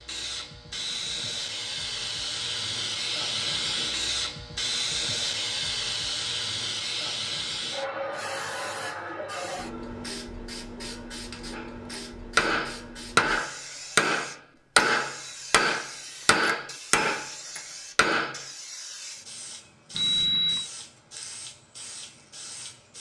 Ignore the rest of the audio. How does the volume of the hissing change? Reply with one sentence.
The volume of the hissing goes down.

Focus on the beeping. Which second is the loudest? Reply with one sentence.
The loudest moment of the beeping is at 20 seconds.